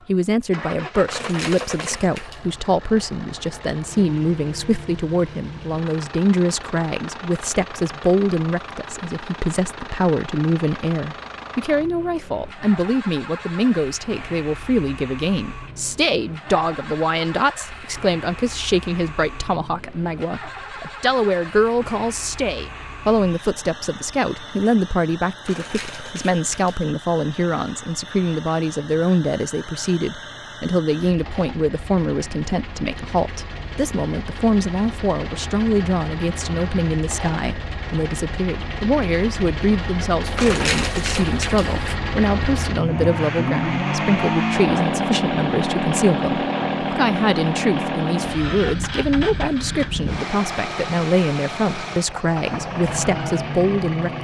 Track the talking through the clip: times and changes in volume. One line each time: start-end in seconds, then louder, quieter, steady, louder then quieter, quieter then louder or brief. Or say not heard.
0.1-54.1 steady.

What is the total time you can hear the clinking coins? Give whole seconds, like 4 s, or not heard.
4 s.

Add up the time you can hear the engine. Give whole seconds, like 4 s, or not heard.
54 s.